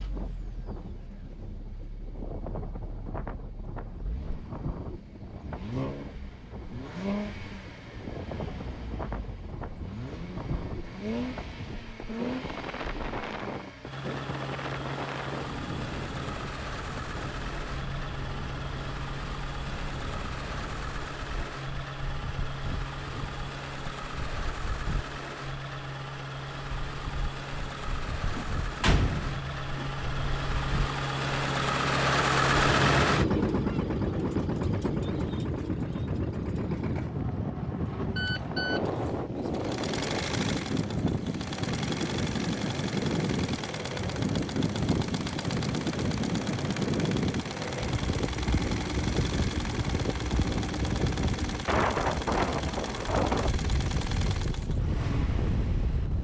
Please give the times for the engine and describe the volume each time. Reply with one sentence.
You can hear the engine from 0.0 to 56.1 s, getting louder then quieter.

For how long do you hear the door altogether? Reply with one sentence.
The door can be heard for 2 seconds in total.